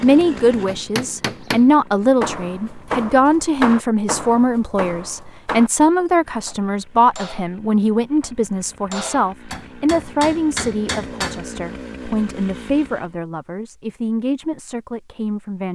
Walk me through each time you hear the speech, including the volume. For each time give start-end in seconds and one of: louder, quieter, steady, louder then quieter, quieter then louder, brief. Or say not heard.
0.0-15.7 quieter.